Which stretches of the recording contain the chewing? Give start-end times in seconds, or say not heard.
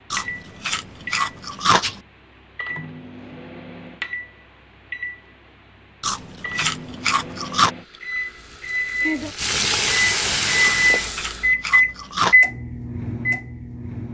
0.1-2.0, 6.0-7.7, 10.6-12.3.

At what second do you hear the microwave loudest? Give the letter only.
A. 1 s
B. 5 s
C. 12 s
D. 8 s
C.